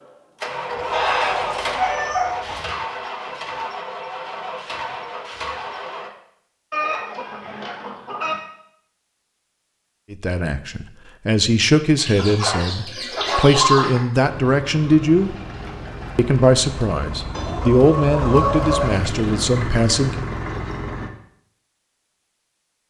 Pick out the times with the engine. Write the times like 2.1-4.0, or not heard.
0.0-6.1, 14.2-21.1.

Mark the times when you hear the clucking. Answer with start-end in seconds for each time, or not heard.
0.7-2.6, 6.7-8.3, 11.9-14.0, 17.3-19.1.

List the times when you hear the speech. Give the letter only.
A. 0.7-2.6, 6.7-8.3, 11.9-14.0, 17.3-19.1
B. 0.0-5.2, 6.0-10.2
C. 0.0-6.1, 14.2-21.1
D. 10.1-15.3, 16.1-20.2
D.